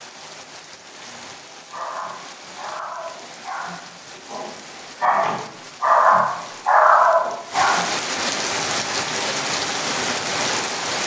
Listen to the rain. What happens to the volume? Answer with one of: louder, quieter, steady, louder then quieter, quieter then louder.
louder.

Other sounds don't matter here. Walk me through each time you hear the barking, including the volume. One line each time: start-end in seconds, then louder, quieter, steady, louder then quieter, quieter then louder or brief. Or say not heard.
1.7-7.8 louder.